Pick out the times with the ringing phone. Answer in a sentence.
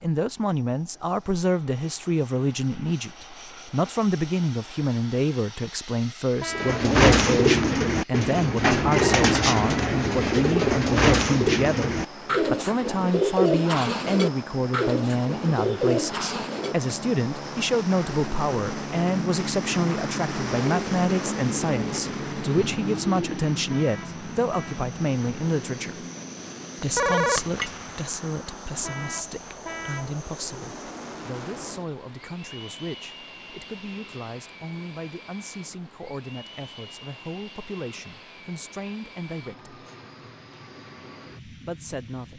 The ringing phone can be heard from 26.8 to 28.0 s.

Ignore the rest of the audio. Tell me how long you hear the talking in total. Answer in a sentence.
You can hear the talking for 40 seconds altogether.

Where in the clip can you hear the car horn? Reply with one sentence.
The car horn can be heard from 6.3 to 6.9 s, from 23.6 to 24.8 s and from 28.8 to 30.1 s.